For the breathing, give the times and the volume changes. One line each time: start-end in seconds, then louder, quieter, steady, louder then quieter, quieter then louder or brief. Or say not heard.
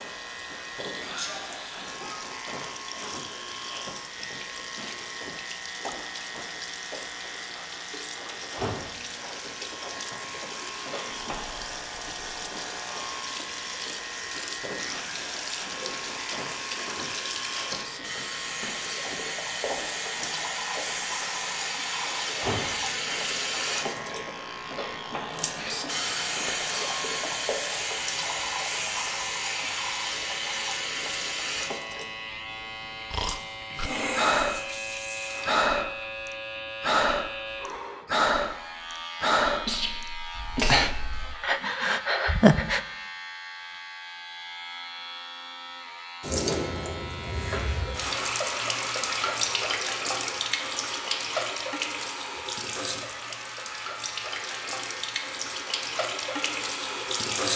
33.1-42.9 steady.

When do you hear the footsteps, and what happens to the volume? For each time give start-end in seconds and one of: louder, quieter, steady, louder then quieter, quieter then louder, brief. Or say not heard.
not heard.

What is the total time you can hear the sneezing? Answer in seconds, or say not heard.
3 s.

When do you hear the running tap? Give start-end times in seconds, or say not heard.
0.0-35.5, 46.2-57.5.